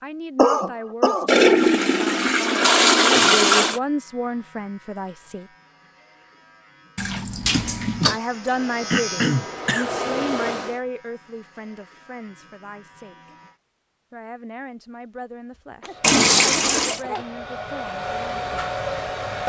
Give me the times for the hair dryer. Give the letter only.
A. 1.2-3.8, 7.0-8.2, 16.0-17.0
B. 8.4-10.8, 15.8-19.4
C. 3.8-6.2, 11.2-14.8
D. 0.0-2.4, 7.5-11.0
B.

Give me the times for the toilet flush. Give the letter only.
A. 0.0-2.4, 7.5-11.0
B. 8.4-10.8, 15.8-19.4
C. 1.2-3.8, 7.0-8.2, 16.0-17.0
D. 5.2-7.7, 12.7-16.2
C.